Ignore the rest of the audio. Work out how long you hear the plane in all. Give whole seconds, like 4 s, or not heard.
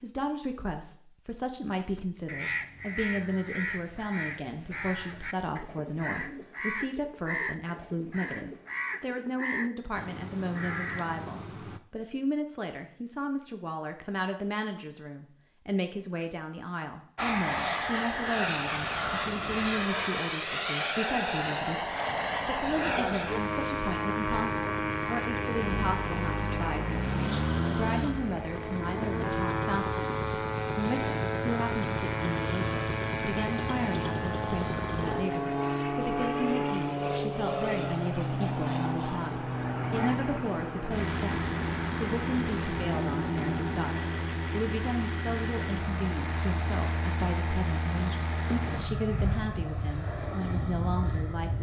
34 s.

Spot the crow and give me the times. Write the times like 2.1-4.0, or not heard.
1.9-11.8.